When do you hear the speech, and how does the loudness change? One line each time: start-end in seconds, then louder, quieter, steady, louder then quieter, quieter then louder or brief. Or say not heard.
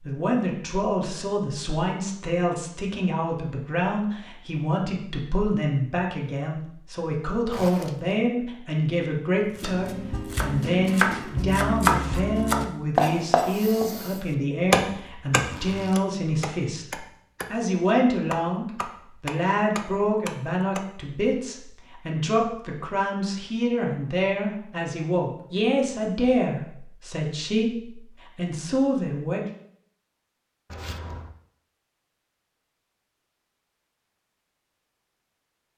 0.1-29.5 steady.